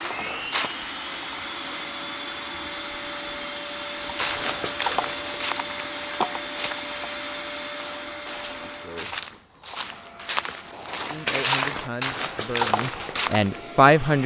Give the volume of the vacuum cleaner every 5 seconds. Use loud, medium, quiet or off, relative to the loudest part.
loud, loud, medium.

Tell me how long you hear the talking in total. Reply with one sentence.
The talking can be heard for 3 seconds in total.